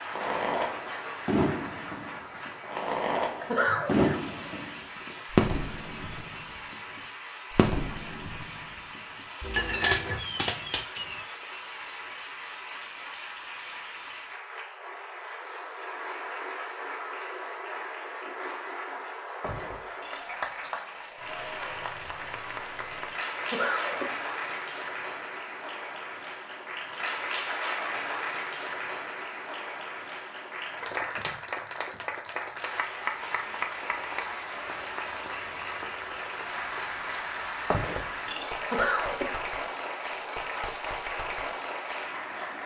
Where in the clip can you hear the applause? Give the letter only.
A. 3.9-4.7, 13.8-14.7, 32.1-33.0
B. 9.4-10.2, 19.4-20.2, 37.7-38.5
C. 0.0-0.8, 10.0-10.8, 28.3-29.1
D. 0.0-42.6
D.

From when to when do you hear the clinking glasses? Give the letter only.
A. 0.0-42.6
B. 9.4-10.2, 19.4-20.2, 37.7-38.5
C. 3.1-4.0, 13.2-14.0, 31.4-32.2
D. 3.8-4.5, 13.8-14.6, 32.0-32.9
B.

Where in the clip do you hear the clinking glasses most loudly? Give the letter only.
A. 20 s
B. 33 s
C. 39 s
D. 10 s
D.